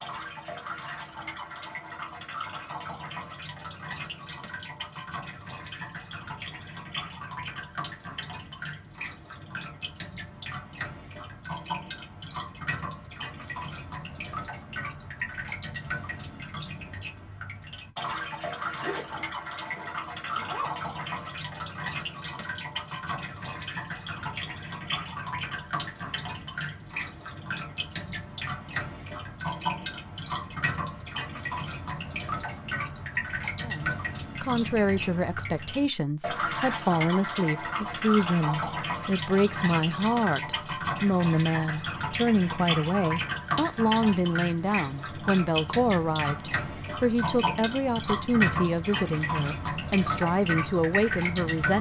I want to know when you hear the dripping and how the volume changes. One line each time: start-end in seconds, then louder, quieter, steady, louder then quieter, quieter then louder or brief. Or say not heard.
0.0-51.7 louder.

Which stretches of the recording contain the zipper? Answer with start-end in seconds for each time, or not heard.
18.8-20.7.